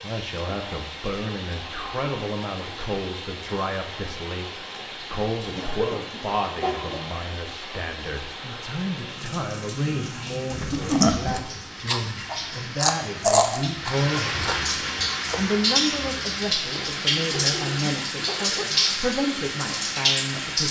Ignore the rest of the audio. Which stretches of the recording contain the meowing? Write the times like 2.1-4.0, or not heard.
not heard.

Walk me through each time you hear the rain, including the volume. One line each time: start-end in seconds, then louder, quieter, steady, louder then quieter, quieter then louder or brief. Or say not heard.
0.0-20.6 louder.